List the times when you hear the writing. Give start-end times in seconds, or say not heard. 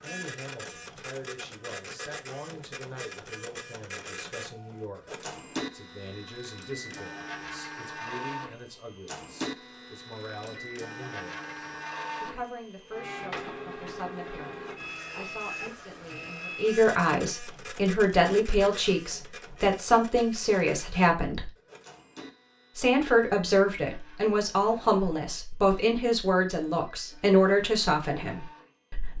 not heard.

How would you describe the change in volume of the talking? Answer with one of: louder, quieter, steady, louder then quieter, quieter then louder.
louder.